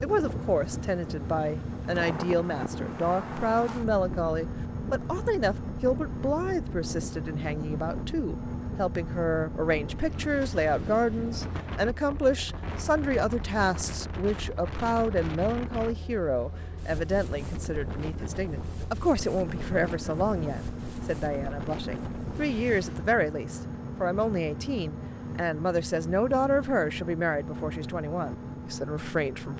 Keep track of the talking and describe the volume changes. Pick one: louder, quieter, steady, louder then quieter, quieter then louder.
steady.